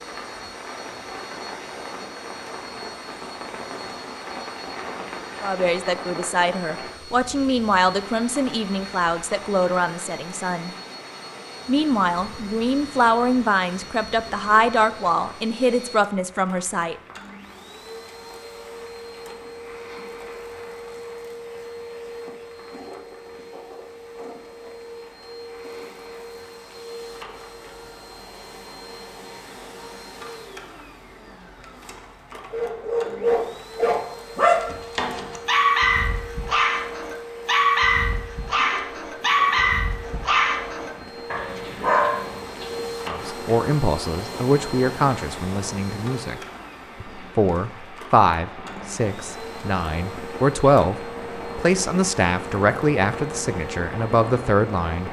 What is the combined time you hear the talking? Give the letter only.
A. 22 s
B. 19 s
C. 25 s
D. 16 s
A.